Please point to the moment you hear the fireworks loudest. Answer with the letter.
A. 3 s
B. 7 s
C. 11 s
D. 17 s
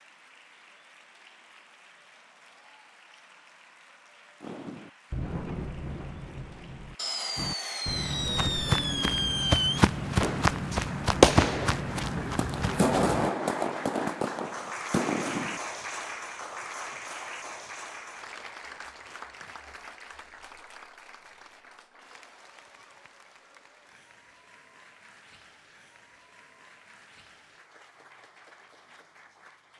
C.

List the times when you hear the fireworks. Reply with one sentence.
You can hear the fireworks from 4.4 to 15.6 s.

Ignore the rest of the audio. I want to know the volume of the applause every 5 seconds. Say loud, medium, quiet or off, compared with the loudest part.
quiet, quiet, loud, loud, quiet, quiet.